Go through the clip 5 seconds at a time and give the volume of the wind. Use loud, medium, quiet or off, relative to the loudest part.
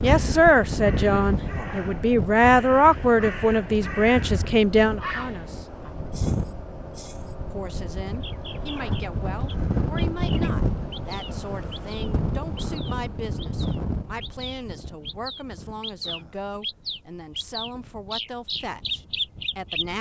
loud, loud, loud, quiet.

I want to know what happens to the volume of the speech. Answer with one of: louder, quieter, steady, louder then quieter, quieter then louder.
quieter.